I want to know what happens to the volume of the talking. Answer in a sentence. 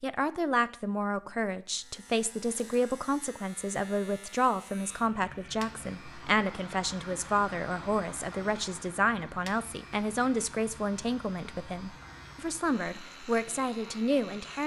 The volume of the talking stays about the same.